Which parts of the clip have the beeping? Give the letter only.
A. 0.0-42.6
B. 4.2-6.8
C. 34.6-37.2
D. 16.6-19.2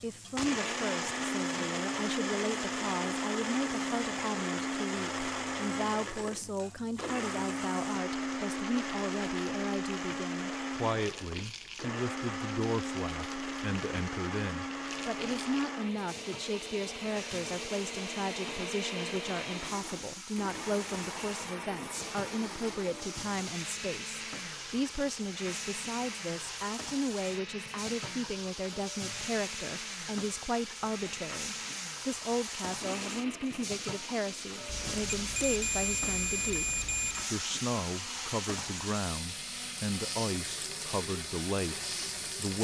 C.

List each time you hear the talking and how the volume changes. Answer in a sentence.
The talking can be heard from 0.0 to 42.6 s, at a steady volume.